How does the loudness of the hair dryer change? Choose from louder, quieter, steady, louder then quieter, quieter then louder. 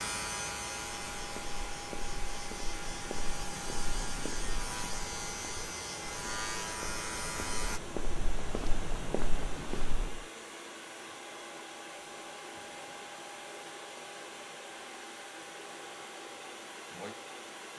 steady.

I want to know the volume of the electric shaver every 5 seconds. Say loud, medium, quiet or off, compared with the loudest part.
loud, loud, off, off.